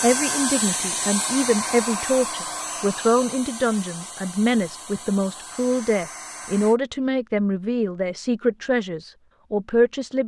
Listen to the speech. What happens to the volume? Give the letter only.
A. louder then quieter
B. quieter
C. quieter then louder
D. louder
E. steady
E.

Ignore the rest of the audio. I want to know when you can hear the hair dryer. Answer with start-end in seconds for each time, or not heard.
0.0-6.8.